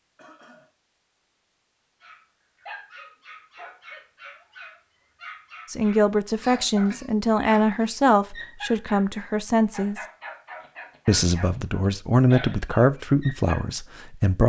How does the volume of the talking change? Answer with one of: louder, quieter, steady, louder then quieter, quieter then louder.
steady.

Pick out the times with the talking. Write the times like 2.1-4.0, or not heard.
5.7-10.0, 11.1-14.4.